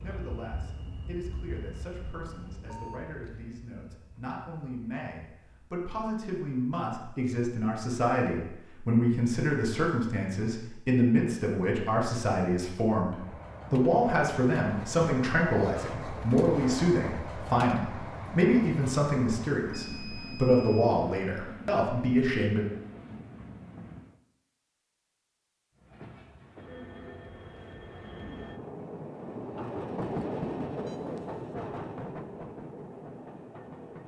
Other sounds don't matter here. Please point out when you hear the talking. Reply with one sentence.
The talking can be heard from 0.0 to 22.6 s.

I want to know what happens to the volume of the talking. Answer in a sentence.
The loudness of the talking goes up.